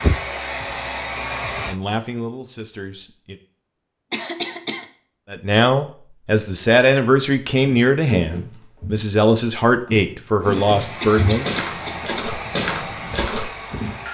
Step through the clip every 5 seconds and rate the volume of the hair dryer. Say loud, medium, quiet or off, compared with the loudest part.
loud, off, medium.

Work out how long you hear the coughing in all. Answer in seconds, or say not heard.
2 s.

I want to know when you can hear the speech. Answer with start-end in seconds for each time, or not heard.
1.6-3.4, 5.3-11.5.